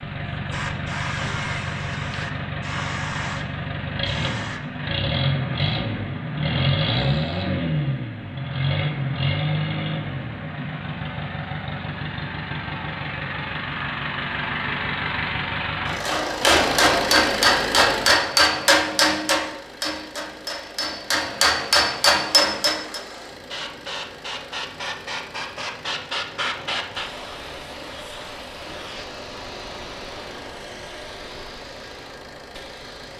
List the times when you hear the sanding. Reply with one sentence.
The sanding can't be heard in this clip.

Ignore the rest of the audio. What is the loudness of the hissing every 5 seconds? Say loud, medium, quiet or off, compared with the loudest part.
loud, off, off, off, loud, loud, medium.